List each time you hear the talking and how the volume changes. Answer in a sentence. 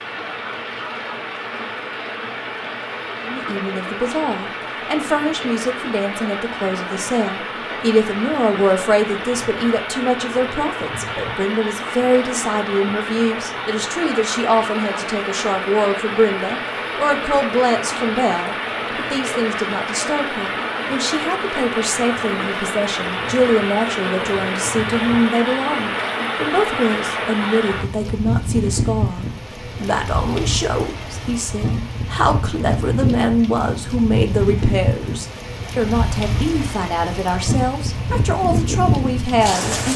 You can hear the talking from 3.2 to 39.9 s, at a steady volume.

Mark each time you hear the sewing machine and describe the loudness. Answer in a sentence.
You can't hear the sewing machine here.